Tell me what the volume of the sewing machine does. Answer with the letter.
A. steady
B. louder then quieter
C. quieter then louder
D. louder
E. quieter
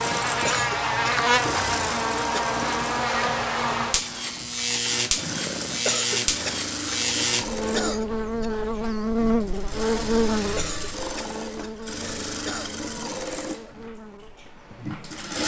A.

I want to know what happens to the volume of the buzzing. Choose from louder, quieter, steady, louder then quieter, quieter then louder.
quieter.